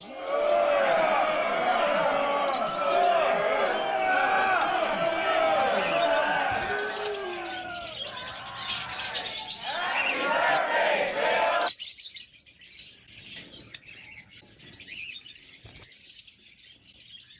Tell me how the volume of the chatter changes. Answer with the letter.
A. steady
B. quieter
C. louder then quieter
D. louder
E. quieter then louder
E.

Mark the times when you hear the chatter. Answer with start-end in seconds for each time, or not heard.
0.0-11.7.